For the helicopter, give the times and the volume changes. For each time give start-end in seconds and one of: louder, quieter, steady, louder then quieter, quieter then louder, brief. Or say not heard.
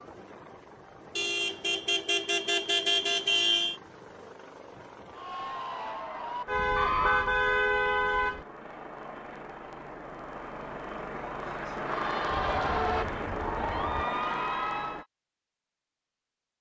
0.0-15.1 louder.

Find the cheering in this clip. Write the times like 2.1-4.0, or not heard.
5.1-7.3, 11.8-15.1.